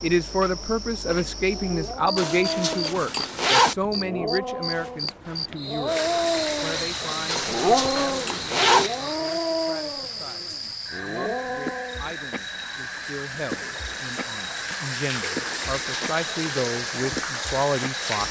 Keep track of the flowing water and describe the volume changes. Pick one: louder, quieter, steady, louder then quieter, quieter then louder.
quieter then louder.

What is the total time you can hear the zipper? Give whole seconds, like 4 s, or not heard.
4 s.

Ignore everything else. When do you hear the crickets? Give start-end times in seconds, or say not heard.
0.0-18.2.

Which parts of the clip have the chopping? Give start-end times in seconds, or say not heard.
not heard.